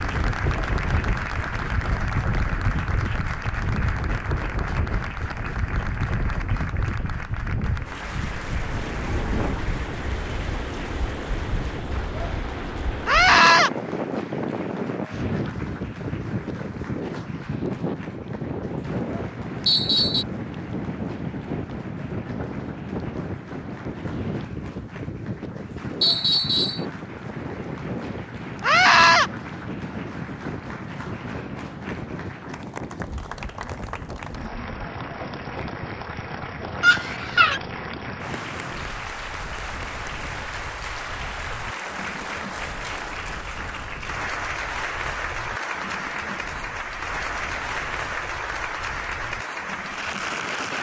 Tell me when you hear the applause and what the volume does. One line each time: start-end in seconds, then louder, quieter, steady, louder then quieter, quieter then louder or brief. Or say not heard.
0.0-50.7 quieter then louder.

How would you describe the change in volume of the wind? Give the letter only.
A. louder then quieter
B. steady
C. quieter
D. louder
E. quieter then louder
C.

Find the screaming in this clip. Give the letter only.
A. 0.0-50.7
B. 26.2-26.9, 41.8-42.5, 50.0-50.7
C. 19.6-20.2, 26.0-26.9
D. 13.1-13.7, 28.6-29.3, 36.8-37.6
D.